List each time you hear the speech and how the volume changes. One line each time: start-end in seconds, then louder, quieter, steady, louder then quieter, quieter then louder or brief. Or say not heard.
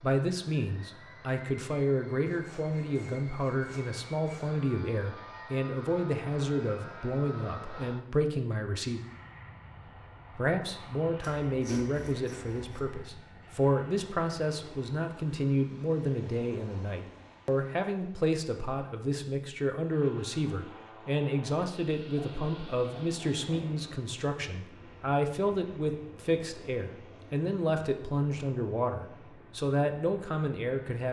0.0-9.0 steady
10.3-31.0 steady.